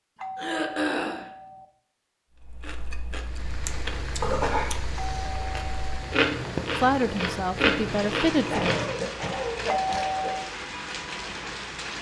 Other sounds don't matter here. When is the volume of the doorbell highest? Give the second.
10 s.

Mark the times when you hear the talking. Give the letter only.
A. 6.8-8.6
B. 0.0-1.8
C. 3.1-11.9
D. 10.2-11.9
A.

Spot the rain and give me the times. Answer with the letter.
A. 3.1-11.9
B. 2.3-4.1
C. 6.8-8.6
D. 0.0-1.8
A.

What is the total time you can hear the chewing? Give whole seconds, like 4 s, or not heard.
8 s.